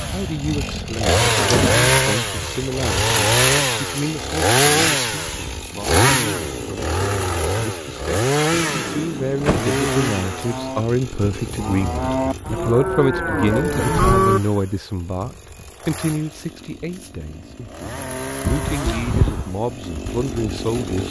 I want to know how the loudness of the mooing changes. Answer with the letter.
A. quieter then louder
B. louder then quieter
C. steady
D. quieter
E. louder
E.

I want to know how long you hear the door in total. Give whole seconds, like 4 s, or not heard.
3 s.